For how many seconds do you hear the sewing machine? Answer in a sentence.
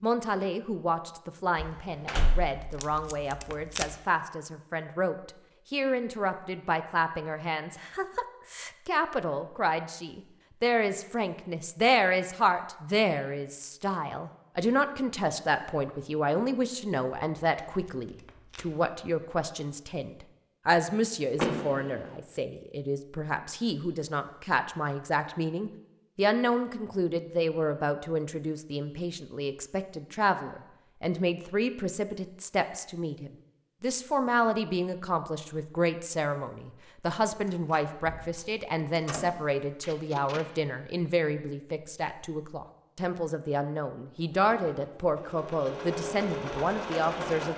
The sewing machine can be heard for 3 seconds in total.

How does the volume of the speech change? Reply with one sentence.
The loudness of the speech stays about the same.